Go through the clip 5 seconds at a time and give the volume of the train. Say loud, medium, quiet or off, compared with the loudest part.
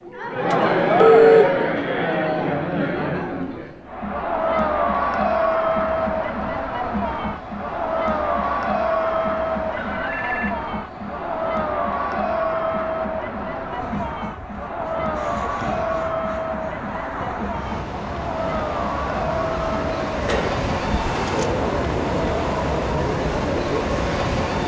off, quiet, quiet, medium, loud.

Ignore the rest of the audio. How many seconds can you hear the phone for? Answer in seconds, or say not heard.
3 s.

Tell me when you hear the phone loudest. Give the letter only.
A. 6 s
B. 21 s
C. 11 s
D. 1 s
D.